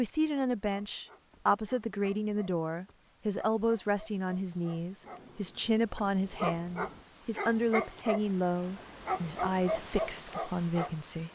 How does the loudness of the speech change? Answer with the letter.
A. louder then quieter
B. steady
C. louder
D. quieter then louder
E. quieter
B.